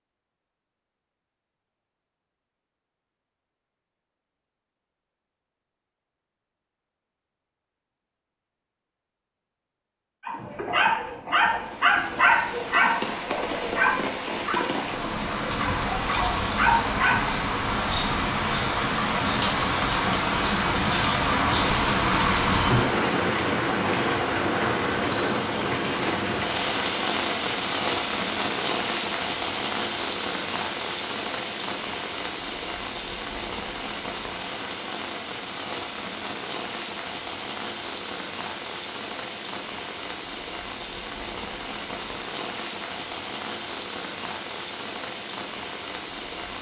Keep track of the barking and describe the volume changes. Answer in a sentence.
The volume of the barking goes down, then up.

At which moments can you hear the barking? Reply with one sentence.
The barking can be heard from 10.2 to 17.2 s.